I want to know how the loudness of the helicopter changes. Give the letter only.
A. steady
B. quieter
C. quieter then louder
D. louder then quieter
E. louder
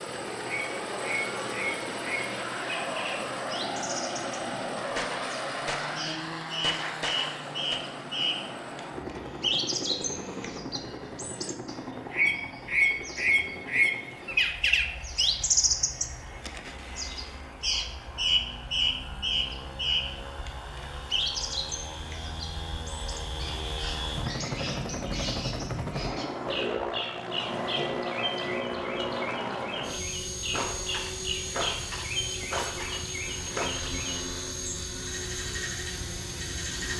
C.